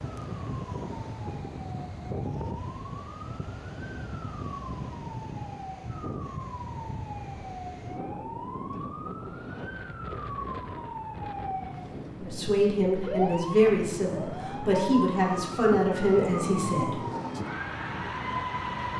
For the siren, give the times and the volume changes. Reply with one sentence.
The siren can be heard from 0.2 to 18.9 s, getting louder.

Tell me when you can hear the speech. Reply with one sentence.
The speech can be heard from 12.2 to 17.0 s.